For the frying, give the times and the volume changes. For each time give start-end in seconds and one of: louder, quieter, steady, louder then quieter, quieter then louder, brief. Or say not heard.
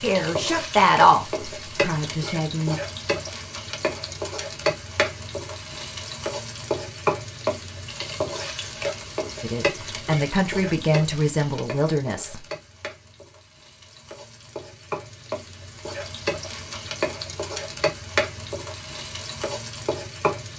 0.0-20.5 quieter then louder.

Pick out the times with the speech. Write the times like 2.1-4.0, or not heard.
0.0-2.8, 9.4-12.3.